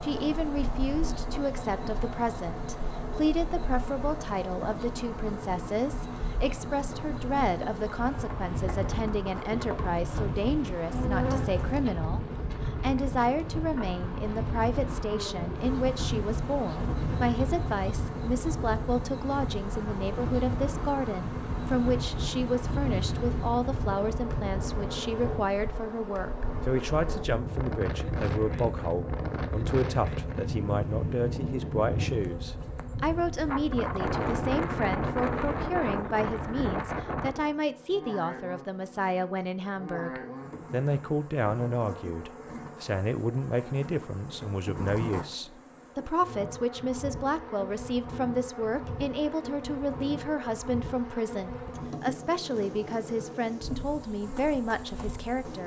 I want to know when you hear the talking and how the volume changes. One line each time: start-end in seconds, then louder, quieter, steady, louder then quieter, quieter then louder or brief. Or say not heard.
0.0-55.6 steady.